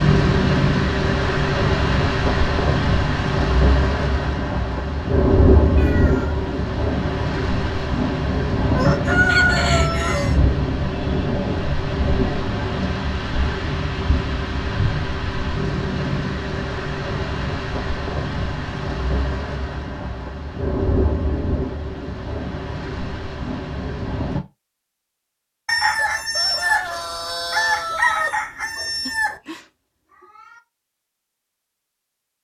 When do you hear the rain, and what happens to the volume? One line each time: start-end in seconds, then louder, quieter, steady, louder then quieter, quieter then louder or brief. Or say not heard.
0.0-24.4 quieter.